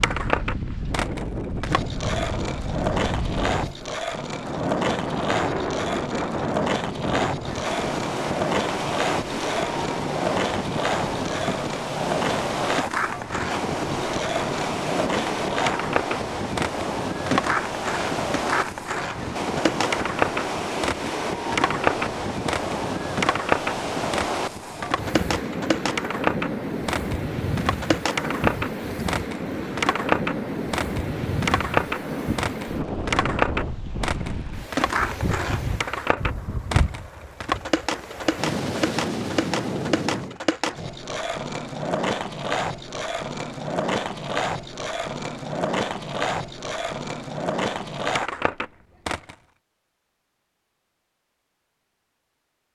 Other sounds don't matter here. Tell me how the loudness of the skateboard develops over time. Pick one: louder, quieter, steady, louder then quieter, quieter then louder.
steady.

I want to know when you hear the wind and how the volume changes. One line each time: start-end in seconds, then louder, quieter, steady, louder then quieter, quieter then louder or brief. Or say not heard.
0.0-40.4 steady.